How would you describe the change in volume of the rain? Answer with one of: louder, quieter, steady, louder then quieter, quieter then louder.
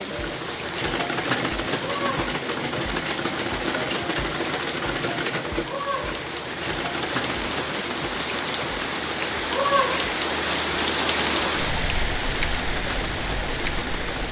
louder.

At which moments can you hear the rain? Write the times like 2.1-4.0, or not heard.
0.0-14.2.